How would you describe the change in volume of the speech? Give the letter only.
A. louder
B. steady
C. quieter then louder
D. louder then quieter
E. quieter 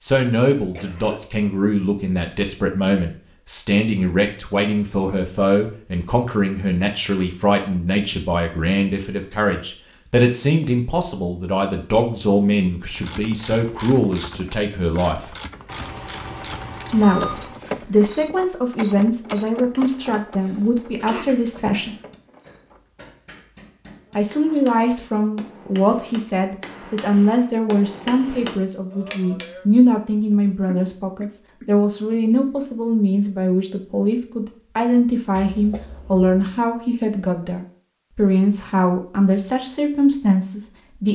B.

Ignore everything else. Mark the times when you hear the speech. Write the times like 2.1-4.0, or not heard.
0.0-15.3, 16.9-21.9, 24.1-41.1.